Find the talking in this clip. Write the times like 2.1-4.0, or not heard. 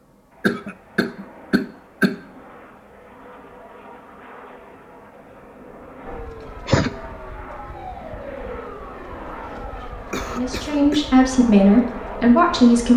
10.3-12.9.